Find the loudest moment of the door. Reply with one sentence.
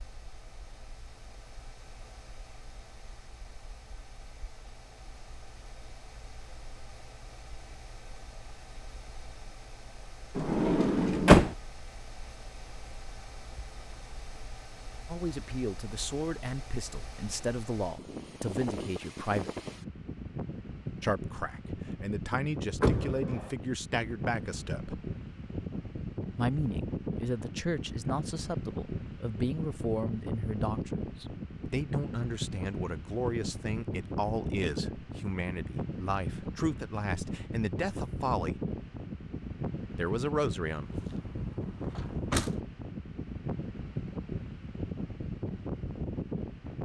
The volume of the door peaks at 11 seconds.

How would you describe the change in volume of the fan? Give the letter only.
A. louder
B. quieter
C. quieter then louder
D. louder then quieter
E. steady
A.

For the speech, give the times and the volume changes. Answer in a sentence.
The speech can be heard from 15.1 to 19.5 s, at a steady volume; from 21.0 to 25.0 s, getting louder; from 26.4 to 38.6 s, at a steady volume; and briefly from 40.0 to 40.9 s.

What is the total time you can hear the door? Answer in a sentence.
The door can be heard for 4 seconds in total.